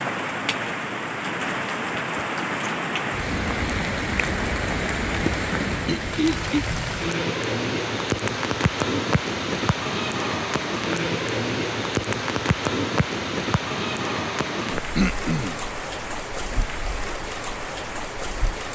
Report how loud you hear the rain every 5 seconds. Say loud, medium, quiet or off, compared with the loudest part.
loud, loud, loud, medium.